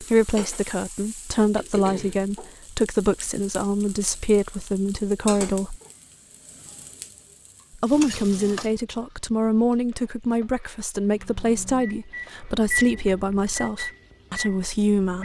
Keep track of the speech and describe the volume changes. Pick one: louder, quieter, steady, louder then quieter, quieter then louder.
steady.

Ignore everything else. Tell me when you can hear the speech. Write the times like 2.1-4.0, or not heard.
0.0-5.8, 7.8-15.2.